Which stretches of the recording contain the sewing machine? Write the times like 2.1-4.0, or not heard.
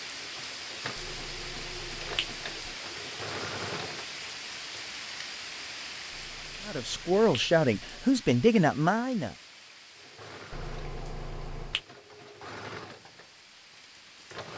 0.0-4.8, 9.9-14.5.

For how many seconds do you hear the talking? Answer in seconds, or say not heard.
3 s.